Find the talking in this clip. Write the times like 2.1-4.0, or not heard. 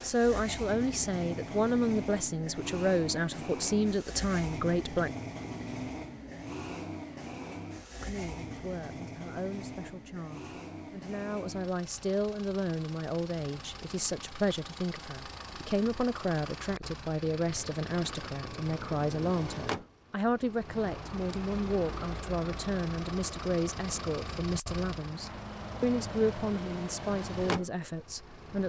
0.0-5.1, 8.0-28.6.